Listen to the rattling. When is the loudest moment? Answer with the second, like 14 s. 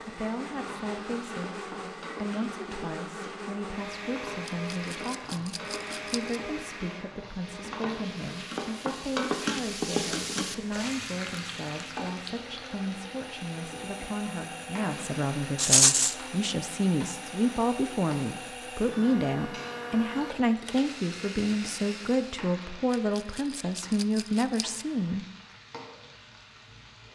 16 s.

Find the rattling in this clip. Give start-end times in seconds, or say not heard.
4.5-6.3, 15.6-16.1, 22.9-24.9.